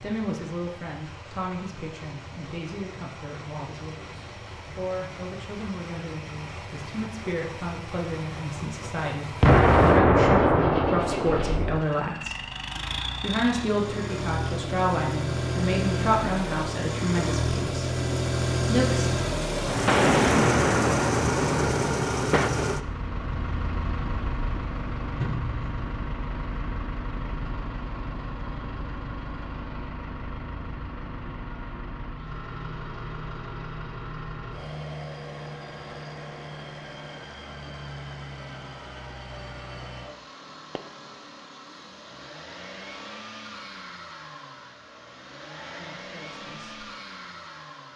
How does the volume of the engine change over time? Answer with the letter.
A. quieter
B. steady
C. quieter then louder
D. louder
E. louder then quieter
E.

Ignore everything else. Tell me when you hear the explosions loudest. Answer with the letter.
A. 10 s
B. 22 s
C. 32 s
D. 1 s
A.